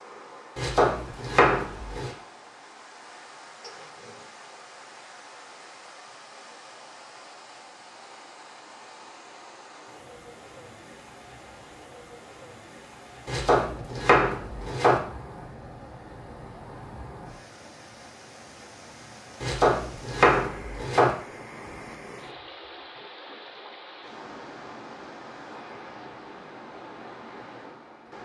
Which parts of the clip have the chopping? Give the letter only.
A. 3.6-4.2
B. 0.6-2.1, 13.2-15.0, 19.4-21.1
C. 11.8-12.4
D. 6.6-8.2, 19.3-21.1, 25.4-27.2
B.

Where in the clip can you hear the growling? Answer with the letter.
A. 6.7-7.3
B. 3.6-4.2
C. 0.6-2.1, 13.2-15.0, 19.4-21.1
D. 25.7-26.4
B.